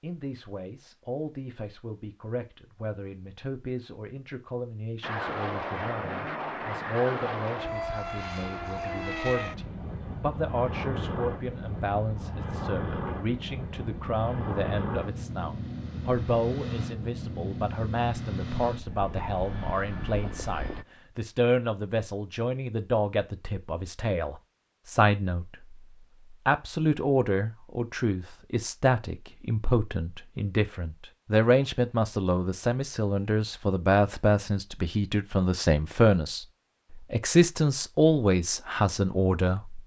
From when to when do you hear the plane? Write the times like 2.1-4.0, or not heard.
5.0-20.9.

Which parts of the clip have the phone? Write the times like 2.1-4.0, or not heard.
not heard.